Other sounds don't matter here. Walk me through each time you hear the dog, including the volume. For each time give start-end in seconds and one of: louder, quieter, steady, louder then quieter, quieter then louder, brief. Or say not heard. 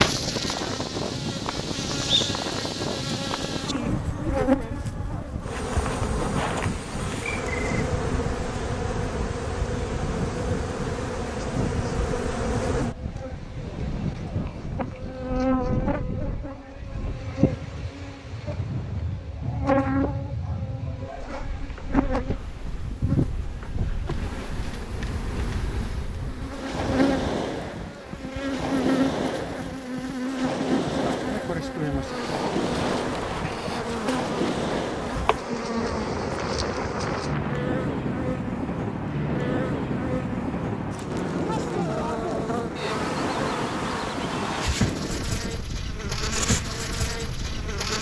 not heard.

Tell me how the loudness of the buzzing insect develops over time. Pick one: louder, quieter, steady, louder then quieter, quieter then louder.
steady.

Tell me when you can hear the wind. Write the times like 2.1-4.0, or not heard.
0.0-47.9.